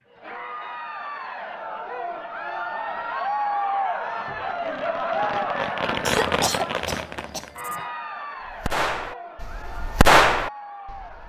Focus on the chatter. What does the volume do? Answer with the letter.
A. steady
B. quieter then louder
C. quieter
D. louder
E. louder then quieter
E.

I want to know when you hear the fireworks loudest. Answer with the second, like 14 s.
10 s.